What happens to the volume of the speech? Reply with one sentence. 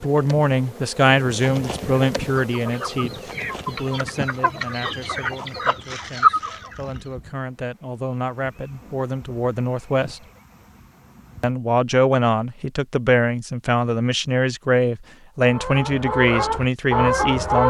The volume of the speech goes down, then up.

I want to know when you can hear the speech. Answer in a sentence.
You can hear the speech from 0.0 to 10.2 s and from 11.4 to 17.6 s.